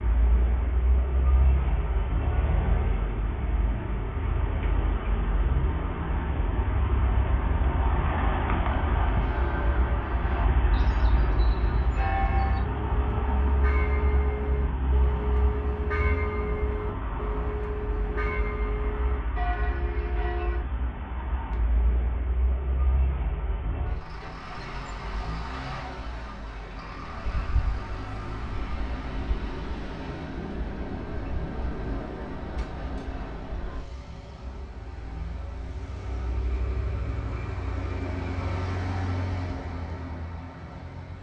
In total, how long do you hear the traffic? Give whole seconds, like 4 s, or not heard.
41 s.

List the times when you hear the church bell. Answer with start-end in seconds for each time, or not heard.
8.6-20.6.